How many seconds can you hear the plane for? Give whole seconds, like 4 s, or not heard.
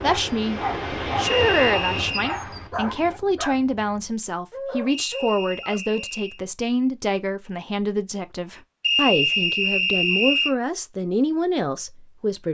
3 s.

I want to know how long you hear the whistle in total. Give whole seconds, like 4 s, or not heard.
4 s.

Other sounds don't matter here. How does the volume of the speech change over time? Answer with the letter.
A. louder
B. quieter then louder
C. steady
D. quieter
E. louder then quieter
C.